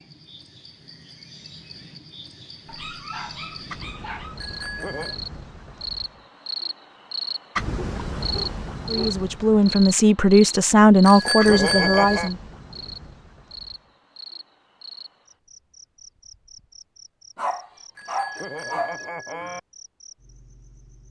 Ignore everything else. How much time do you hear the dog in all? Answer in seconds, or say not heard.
5 s.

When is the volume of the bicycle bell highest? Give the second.
12 s.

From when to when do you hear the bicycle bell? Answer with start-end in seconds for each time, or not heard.
4.3-5.2, 11.1-12.3, 17.9-19.6.